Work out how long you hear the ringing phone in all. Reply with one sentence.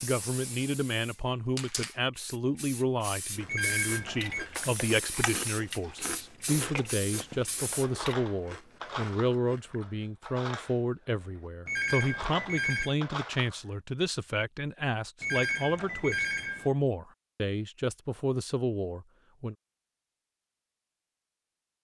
The ringing phone can be heard for 4 seconds in total.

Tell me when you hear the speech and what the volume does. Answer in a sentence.
You can hear the speech from 0.0 to 19.6 s, at a steady volume.